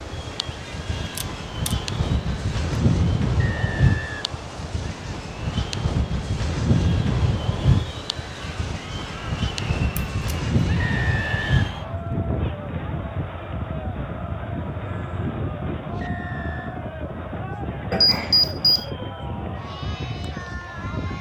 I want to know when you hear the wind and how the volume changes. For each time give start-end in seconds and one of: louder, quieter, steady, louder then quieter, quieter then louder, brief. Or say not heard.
0.0-21.1 quieter.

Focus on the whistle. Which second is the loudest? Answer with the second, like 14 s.
11 s.